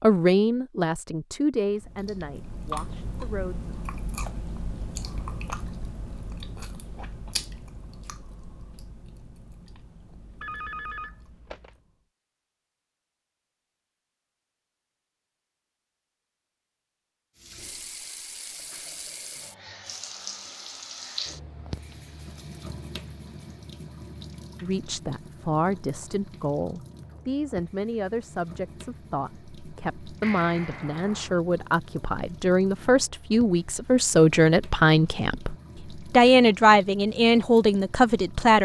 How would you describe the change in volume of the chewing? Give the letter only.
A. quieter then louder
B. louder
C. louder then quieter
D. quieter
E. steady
D.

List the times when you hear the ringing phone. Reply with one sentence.
The ringing phone can be heard from 10.4 to 11.8 s and from 30.2 to 31.4 s.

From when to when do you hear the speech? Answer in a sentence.
The speech can be heard from 0.0 to 3.7 s and from 24.6 to 38.6 s.